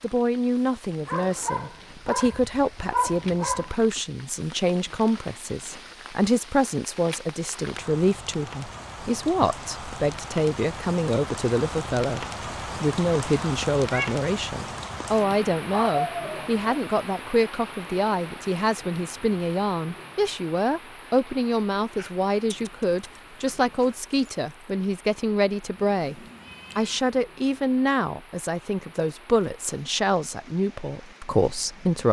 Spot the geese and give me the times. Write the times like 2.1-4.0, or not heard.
not heard.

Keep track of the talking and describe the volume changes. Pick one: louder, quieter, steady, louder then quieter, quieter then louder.
steady.